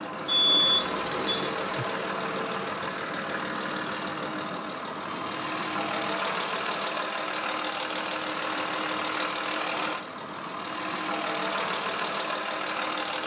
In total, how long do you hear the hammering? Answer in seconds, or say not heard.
not heard.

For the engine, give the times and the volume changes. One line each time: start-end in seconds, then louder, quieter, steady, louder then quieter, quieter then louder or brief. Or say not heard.
0.0-13.2 steady.